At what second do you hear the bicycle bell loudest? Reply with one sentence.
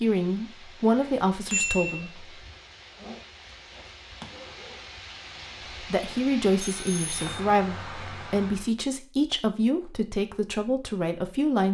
The loudest moment of the bicycle bell is at 2 seconds.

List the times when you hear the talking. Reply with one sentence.
The talking can be heard from 0.0 to 2.4 s and from 5.8 to 11.6 s.